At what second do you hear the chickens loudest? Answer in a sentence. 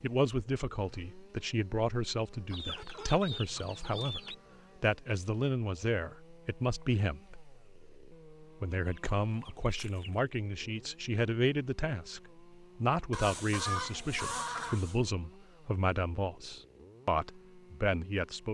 The volume of the chickens peaks at 14 seconds.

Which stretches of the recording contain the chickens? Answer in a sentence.
The chickens can be heard from 2.5 to 4.3 s, from 8.7 to 10.2 s and from 13.1 to 15.0 s.